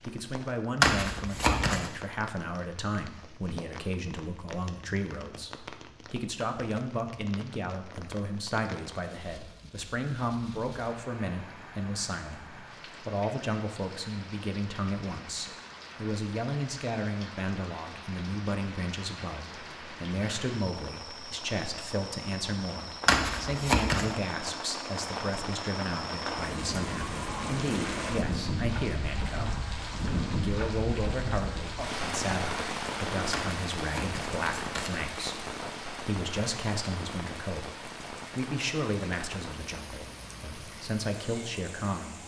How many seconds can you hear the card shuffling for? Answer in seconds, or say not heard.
4 s.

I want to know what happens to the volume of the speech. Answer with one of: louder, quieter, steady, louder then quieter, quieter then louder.
steady.